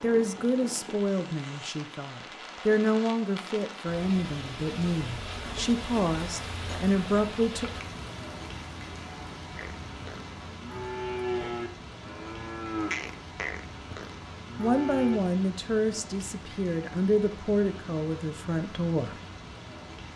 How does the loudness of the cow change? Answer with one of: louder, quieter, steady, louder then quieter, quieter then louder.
louder then quieter.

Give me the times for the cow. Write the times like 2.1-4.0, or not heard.
9.6-15.2.